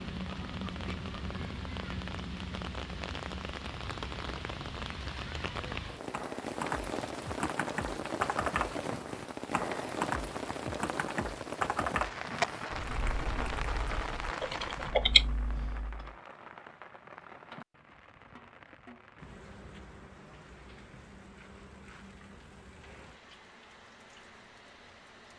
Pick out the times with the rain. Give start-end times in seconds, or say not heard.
0.0-25.3.